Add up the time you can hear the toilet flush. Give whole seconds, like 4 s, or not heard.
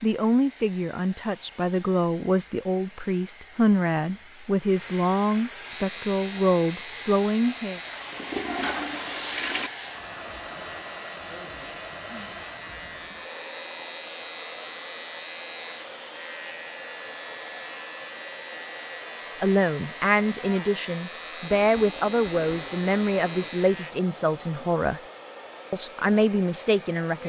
4 s.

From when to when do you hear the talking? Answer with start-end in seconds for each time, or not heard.
0.0-7.8, 19.4-25.0, 25.7-27.2.